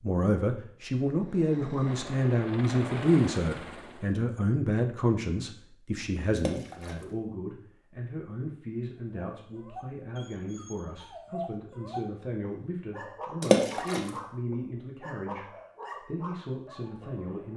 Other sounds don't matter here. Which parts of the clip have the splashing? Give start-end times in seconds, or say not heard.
6.3-7.0, 13.4-14.1.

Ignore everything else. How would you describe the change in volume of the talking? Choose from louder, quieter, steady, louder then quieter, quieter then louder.
quieter.